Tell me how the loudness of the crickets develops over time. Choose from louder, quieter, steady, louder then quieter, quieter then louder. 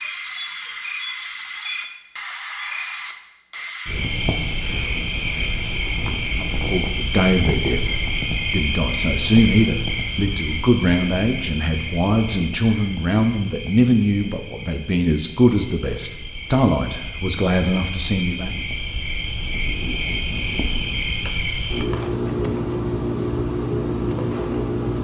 quieter then louder.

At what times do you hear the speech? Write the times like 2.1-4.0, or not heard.
6.3-18.6.